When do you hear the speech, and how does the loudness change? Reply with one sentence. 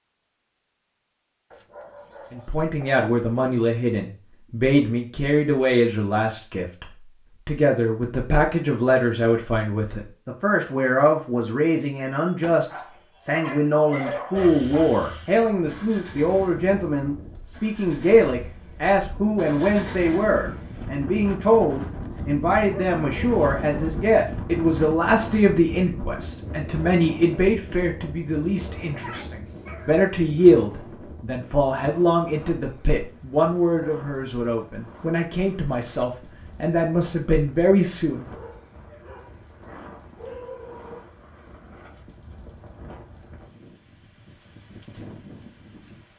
You can hear the speech from 2.3 to 38.2 s, at a steady volume.